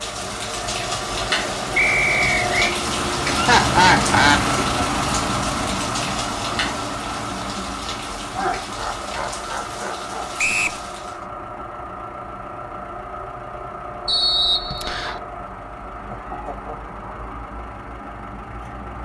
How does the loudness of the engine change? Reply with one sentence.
The loudness of the engine goes down.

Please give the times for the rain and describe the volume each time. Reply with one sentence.
The rain can be heard from 0.0 to 11.2 s, getting quieter.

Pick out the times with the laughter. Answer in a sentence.
The laughter can be heard from 3.4 to 4.4 s, from 8.3 to 10.3 s and from 15.9 to 16.9 s.